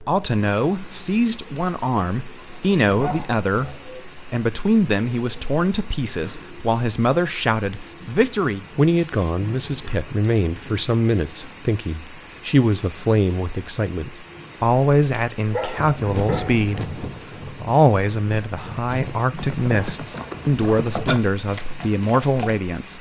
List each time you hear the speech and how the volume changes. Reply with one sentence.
The speech can be heard from 0.0 to 22.9 s, at a steady volume.